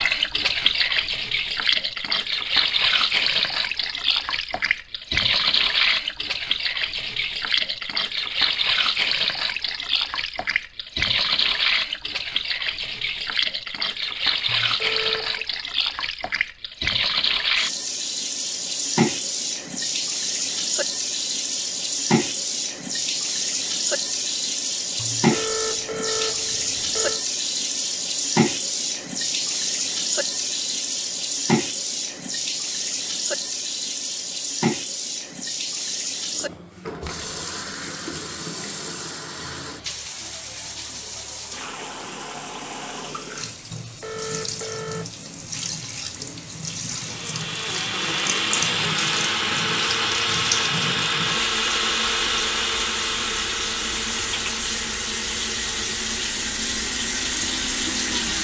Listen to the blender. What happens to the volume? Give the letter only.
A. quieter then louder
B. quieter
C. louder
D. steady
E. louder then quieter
B.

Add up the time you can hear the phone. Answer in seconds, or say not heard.
5 s.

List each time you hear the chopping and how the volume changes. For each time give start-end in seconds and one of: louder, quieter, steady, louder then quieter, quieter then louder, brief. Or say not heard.
not heard.